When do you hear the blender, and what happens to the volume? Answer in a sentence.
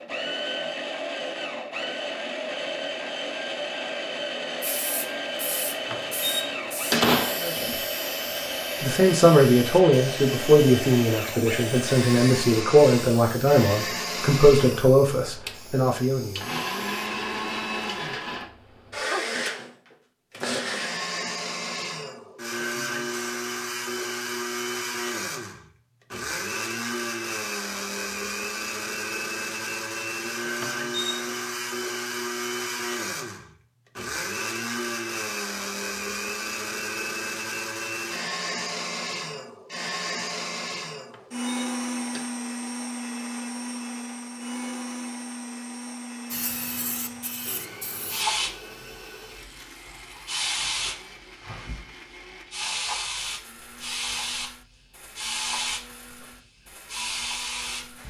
The blender can be heard from 0.0 to 58.0 s, getting quieter.